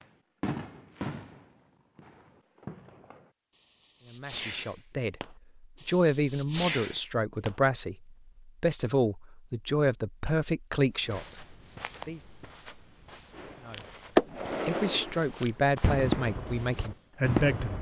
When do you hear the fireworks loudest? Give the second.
14 s.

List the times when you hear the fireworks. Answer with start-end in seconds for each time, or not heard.
0.4-7.5, 13.3-17.7.